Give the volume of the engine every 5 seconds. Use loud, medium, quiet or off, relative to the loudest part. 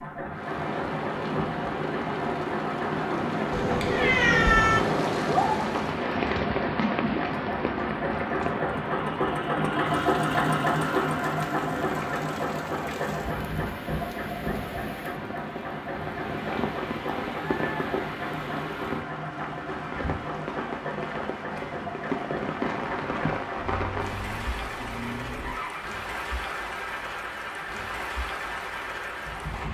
medium, loud, loud, medium, medium, medium.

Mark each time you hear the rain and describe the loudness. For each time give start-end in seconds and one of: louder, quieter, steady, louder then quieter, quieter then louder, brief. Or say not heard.
0.1-29.6 quieter.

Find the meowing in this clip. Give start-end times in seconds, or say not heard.
3.5-4.8.